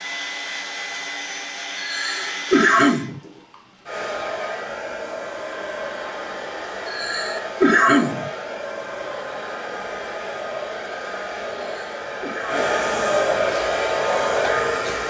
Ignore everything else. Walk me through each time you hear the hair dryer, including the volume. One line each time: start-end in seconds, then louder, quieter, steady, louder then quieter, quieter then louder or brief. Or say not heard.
0.0-15.0 louder.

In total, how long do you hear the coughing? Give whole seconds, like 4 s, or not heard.
4 s.